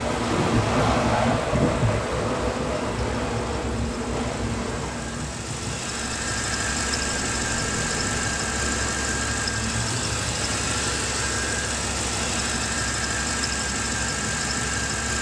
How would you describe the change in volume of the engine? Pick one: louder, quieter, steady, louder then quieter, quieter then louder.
louder.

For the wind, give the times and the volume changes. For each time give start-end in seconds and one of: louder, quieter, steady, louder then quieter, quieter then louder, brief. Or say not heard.
0.0-9.4 quieter.